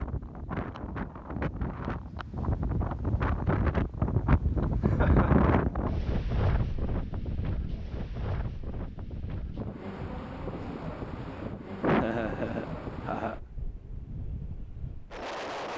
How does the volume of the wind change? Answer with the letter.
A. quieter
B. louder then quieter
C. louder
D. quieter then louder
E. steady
B.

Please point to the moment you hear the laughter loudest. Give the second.
12 s.